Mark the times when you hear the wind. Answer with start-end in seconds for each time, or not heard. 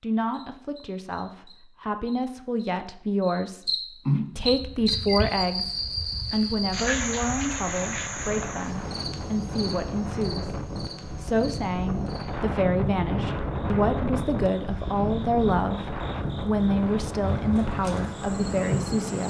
4.3-18.9.